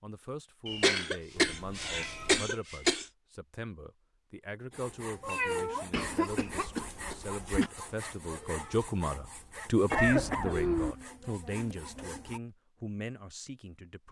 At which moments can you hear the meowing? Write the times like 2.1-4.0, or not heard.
1.4-2.5, 5.2-5.8, 9.9-10.9.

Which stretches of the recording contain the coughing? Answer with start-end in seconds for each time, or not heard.
0.7-3.0, 5.9-7.7, 9.9-10.6.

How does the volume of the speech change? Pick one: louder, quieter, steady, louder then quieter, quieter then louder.
louder then quieter.